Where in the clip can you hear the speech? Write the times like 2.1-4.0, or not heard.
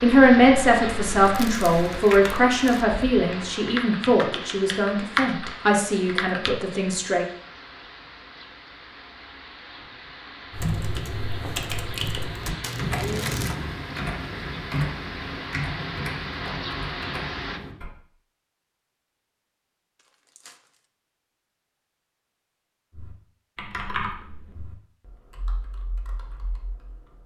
0.0-7.2.